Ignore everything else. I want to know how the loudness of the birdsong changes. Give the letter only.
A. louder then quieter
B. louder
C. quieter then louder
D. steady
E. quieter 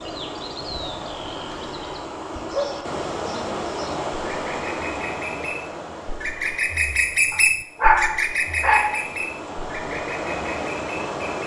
A.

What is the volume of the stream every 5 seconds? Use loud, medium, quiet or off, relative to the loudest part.
loud, medium, loud.